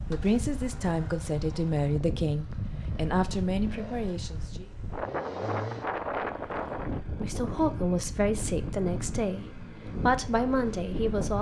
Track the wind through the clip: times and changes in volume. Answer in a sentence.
The wind can be heard from 0.0 to 11.3 s, getting louder then quieter.